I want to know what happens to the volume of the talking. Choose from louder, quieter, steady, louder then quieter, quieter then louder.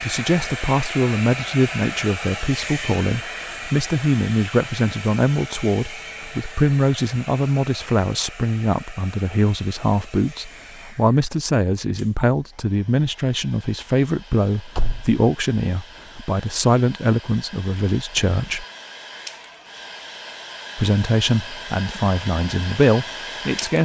steady.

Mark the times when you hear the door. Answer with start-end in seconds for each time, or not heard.
14.8-15.2.